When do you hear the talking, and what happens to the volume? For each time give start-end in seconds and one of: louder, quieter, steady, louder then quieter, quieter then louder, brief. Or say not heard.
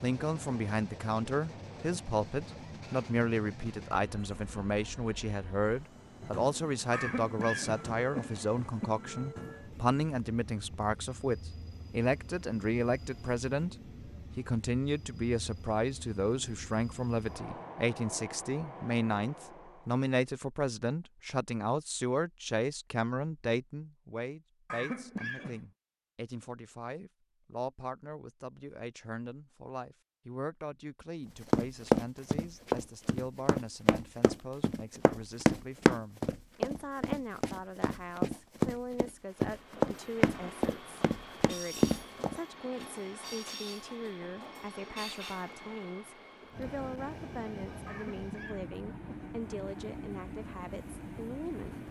0.0-51.8 quieter.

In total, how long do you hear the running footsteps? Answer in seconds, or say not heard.
11 s.